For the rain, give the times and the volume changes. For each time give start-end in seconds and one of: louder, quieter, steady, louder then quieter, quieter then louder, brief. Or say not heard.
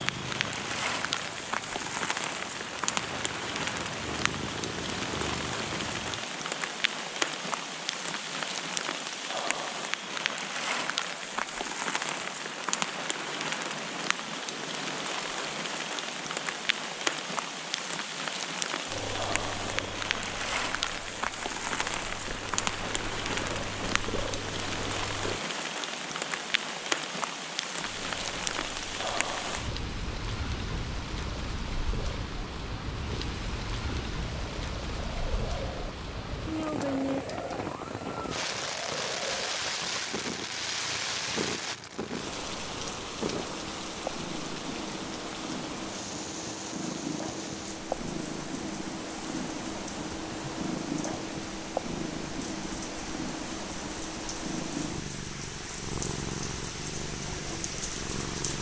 0.0-58.5 quieter.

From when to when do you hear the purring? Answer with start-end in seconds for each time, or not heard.
0.0-6.2, 18.9-25.4, 27.8-58.5.